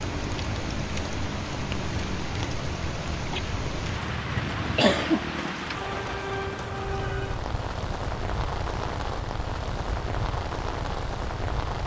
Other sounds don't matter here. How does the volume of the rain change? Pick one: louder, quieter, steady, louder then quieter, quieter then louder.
steady.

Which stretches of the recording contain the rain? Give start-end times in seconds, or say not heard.
0.0-11.8.